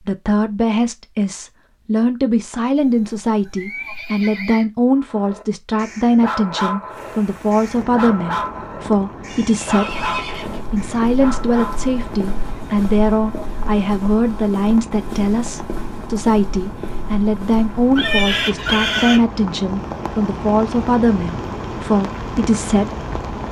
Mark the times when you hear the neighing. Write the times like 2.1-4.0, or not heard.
2.8-4.7, 9.2-10.6, 17.9-19.2.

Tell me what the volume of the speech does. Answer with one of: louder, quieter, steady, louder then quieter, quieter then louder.
steady.